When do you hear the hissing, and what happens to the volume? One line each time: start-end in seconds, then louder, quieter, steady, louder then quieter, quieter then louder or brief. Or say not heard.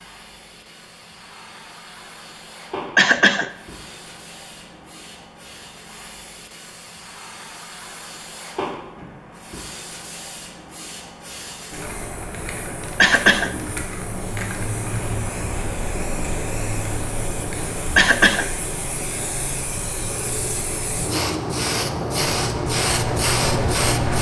0.0-24.1 louder.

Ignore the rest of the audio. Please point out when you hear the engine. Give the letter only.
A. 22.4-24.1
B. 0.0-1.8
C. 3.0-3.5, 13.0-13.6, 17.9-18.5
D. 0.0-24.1
A.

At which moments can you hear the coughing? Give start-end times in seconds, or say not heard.
3.0-3.5, 13.0-13.6, 17.9-18.5.